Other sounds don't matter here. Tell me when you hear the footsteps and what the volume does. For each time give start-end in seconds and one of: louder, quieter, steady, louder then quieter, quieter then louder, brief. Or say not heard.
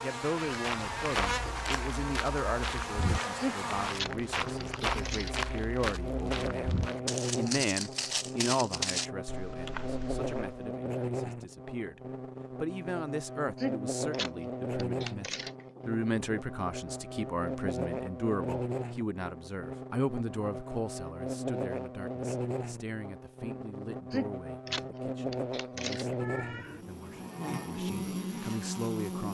0.5-10.7 steady.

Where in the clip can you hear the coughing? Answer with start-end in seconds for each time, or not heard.
3.4-5.5, 13.6-15.8, 24.1-26.1.